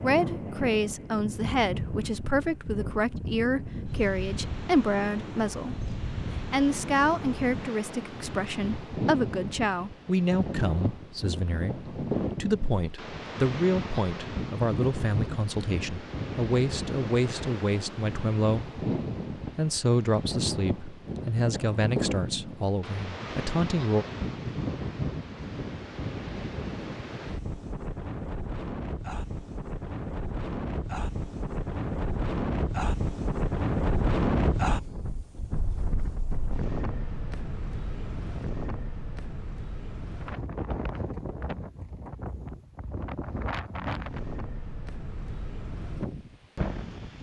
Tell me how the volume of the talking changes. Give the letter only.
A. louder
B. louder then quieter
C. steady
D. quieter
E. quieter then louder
C.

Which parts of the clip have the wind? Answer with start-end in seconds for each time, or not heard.
0.0-47.1.